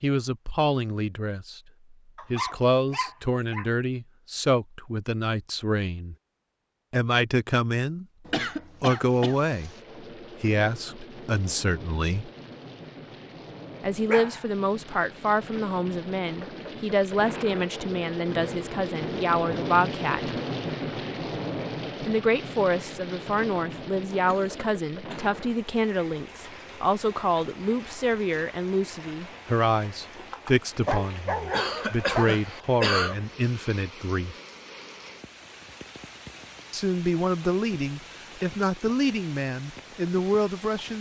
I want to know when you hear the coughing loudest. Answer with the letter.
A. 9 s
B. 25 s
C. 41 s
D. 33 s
D.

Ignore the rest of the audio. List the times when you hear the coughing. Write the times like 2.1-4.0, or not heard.
8.2-9.4, 24.1-25.4, 31.5-33.1.